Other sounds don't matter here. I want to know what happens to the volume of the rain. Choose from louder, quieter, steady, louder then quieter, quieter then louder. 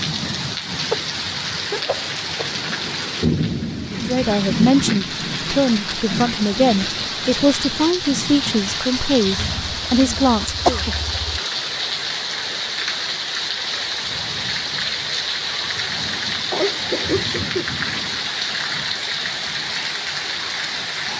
steady.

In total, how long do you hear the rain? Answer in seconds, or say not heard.
21 s.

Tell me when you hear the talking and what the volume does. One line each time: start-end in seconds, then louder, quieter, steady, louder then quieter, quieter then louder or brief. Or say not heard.
3.9-10.8 steady.